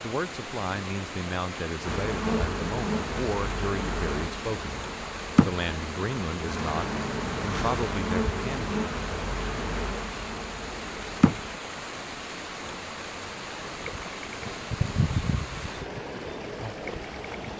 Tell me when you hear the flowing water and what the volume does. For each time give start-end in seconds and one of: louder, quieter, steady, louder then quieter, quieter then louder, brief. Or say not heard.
0.0-17.5 steady.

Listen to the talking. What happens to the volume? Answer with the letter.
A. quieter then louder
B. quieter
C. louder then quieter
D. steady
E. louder
D.